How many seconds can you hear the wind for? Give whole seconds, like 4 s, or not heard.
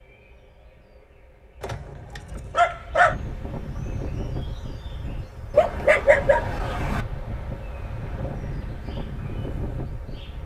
7 s.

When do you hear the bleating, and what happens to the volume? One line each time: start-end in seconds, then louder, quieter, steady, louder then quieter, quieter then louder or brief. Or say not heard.
not heard.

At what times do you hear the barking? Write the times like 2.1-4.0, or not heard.
1.6-3.1, 5.5-7.0.